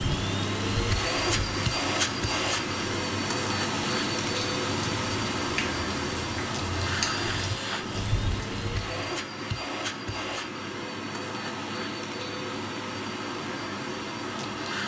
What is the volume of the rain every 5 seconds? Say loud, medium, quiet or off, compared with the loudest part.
loud, loud, off.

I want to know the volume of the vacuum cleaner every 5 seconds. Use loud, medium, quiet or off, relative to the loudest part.
loud, loud, medium.